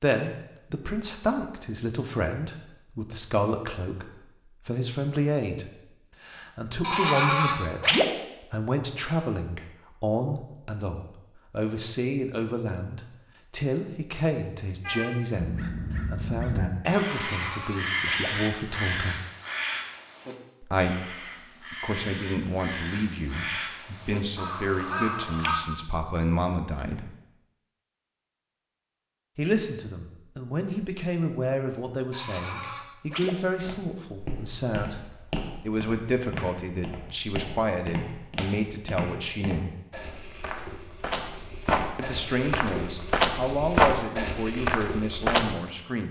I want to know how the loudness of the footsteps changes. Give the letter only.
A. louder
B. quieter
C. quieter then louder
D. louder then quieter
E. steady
A.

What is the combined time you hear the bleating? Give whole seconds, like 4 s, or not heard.
4 s.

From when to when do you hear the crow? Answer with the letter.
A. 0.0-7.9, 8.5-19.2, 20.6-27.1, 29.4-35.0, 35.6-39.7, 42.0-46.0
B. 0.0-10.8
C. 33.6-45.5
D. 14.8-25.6
D.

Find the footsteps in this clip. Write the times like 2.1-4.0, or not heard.
33.6-45.5.